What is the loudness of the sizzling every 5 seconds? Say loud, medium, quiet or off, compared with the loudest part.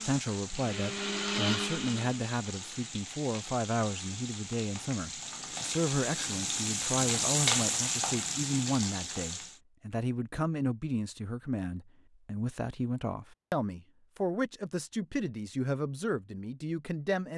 medium, loud, off, off.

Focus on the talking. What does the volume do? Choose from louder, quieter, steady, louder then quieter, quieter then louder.
steady.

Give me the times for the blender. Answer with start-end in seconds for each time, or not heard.
0.0-2.3.